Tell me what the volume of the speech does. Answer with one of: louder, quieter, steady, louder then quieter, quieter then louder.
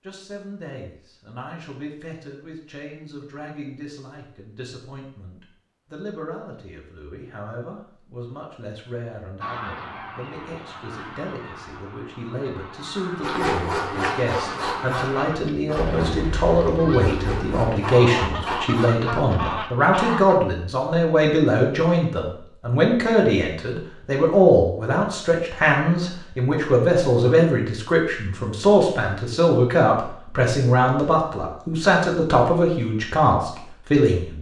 louder.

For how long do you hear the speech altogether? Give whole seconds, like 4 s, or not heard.
34 s.